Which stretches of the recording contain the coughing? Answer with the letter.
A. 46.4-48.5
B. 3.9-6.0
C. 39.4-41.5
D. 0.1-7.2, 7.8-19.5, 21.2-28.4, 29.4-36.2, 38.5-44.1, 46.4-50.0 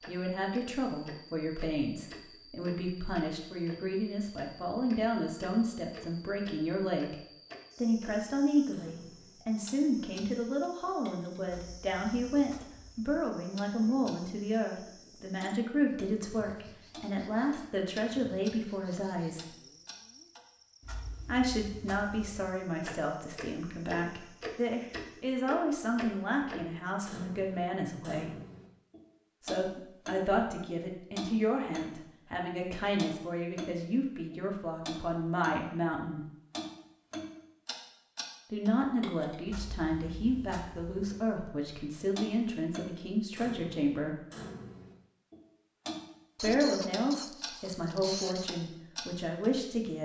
A.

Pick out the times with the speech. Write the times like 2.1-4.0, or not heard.
0.1-7.2, 7.8-19.5, 21.2-28.4, 29.4-36.2, 38.5-44.1, 46.4-50.0.